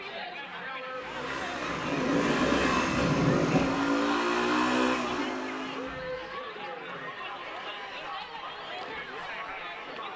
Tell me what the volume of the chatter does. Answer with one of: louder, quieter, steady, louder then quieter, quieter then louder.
steady.